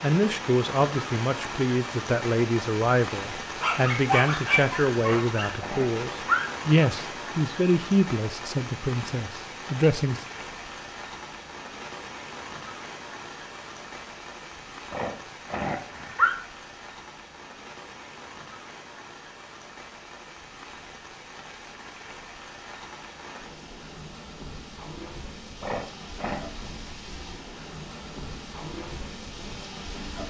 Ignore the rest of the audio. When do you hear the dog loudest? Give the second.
4 s.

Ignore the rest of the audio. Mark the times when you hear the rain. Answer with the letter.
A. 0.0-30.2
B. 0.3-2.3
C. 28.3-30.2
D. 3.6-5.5
A.